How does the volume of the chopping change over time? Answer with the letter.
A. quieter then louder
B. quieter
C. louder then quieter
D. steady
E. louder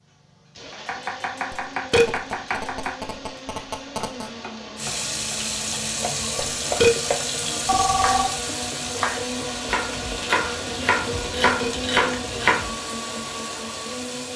A.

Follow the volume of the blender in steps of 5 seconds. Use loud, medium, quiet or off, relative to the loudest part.
medium, loud, loud.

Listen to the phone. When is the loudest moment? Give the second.
8 s.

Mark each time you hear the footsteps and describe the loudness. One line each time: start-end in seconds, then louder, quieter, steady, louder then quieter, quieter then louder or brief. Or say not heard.
not heard.